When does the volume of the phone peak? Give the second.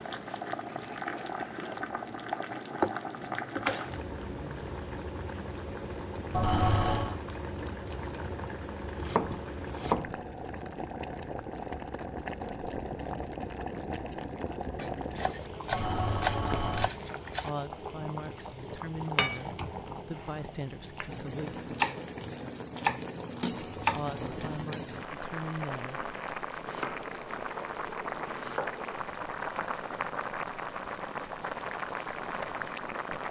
7 s.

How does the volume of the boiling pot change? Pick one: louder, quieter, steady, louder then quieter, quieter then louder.
steady.